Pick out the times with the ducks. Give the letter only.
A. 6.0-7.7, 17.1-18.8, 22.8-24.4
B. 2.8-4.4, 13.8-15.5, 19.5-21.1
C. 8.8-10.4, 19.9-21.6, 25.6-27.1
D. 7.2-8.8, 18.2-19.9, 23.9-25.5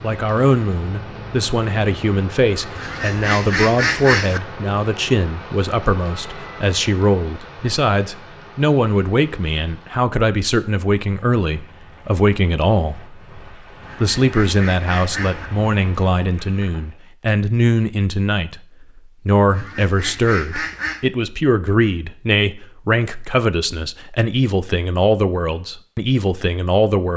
B.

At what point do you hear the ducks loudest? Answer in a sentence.
The volume of the ducks peaks at 4 seconds.